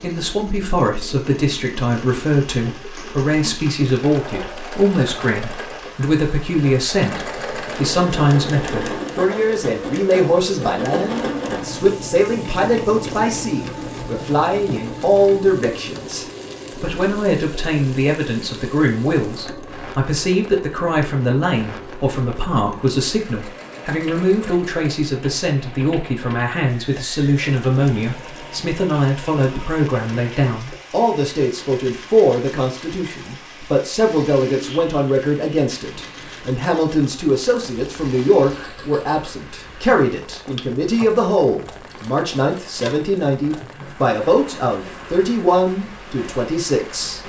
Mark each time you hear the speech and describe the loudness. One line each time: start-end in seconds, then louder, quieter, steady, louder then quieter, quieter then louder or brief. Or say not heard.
0.0-47.2 steady.